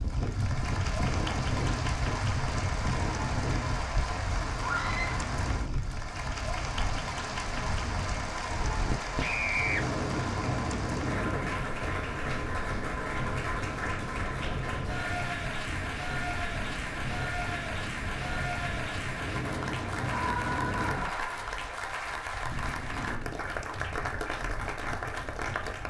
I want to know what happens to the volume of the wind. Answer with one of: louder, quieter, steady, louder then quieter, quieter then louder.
quieter.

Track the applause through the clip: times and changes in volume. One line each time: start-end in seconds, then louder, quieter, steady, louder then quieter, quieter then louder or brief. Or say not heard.
0.0-25.8 steady.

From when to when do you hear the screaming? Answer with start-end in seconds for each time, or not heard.
4.6-5.2, 9.2-9.8, 20.1-21.4.